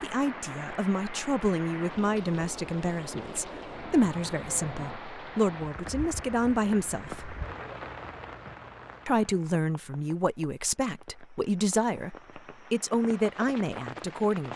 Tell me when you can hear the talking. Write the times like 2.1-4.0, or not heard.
0.0-7.3, 9.1-14.5.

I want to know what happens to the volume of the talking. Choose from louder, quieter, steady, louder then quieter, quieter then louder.
steady.